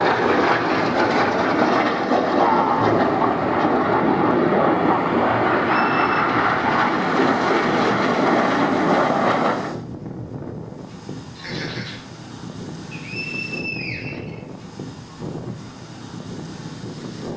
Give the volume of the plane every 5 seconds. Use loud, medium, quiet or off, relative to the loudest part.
loud, loud, off, off.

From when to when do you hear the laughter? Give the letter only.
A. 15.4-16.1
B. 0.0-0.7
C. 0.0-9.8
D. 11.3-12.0
D.